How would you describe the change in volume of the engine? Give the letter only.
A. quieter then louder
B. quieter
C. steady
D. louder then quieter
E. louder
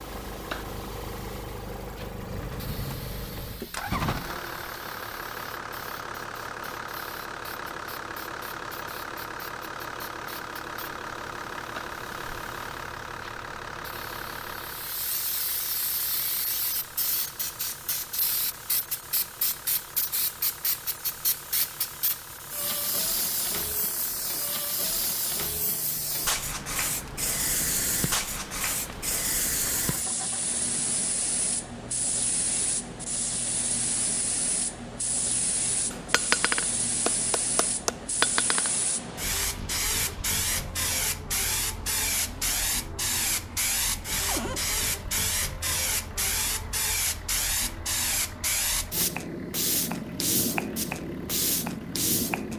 B.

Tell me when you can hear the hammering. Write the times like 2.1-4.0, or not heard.
35.9-38.7.